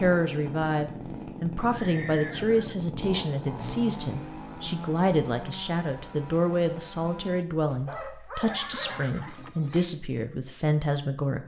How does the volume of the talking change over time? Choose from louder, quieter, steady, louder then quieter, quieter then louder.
steady.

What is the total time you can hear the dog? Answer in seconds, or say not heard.
2 s.